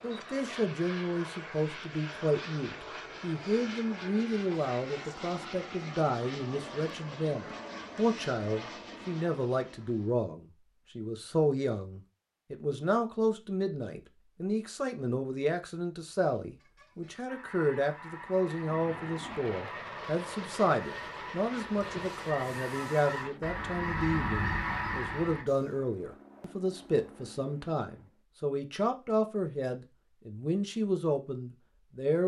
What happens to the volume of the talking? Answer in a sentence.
The loudness of the talking stays about the same.